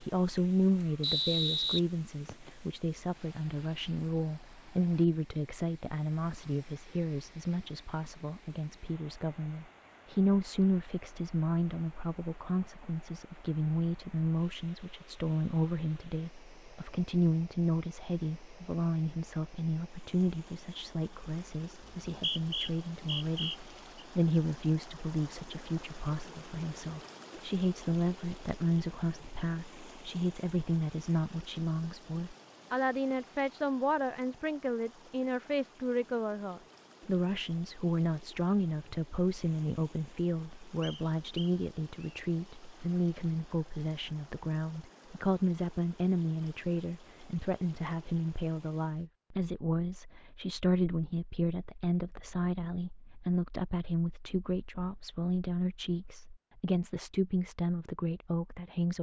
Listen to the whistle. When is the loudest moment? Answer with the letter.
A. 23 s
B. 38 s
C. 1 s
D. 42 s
C.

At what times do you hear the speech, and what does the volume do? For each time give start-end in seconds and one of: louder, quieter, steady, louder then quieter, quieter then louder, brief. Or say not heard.
0.0-58.9 steady.